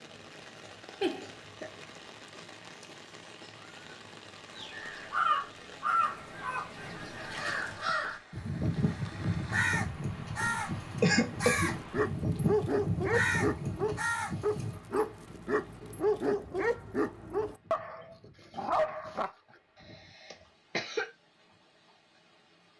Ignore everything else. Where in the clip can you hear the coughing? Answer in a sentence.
The coughing can be heard from 1.0 to 1.7 s, from 10.4 to 11.8 s and from 19.9 to 21.1 s.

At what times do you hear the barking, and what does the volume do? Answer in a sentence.
You can hear the barking from 11.7 to 19.3 s, at a steady volume.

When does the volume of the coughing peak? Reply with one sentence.
The loudest moment of the coughing is at 11 seconds.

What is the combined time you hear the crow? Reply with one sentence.
You can hear the crow for 10 seconds altogether.